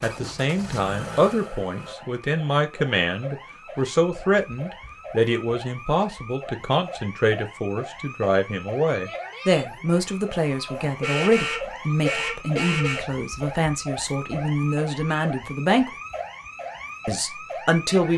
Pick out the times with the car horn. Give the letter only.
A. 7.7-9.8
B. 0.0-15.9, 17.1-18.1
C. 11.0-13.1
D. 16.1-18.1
C.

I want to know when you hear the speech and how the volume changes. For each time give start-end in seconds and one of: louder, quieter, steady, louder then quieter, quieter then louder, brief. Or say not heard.
0.0-15.9 steady
17.1-18.1 brief.